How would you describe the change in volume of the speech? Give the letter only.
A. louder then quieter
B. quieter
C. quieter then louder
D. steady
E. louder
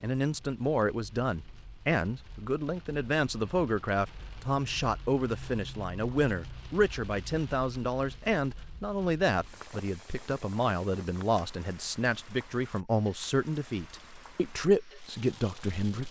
D.